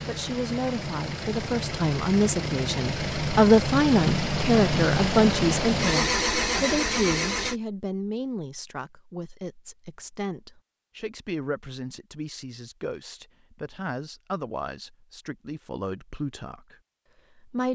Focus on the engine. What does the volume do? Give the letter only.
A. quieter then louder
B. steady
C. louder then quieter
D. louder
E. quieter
D.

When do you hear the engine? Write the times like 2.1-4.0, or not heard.
0.0-7.5.